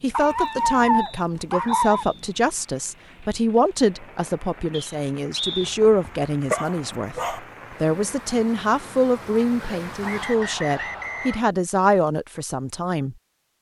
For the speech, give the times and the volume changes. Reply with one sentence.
The speech can be heard from 0.0 to 13.2 s, at a steady volume.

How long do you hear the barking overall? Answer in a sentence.
The barking can be heard for 6 seconds in total.